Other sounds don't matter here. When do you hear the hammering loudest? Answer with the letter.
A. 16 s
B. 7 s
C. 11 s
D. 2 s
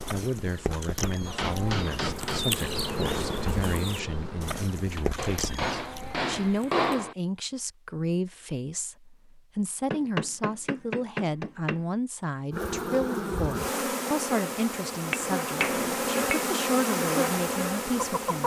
B.